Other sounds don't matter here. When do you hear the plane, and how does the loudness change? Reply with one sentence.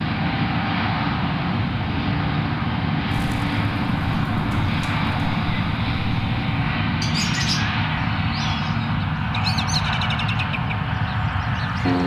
You can hear the plane from 0.0 to 12.0 s, at a steady volume.